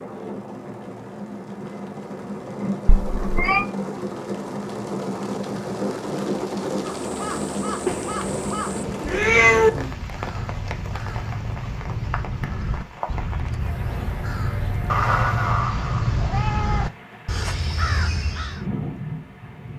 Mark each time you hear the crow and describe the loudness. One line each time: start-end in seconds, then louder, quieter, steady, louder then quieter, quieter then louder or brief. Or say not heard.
6.8-18.6 louder.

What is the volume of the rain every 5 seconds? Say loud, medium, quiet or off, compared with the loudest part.
loud, loud, medium, medium.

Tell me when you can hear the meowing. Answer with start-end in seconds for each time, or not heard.
2.9-3.6, 7.8-9.7, 14.8-16.9.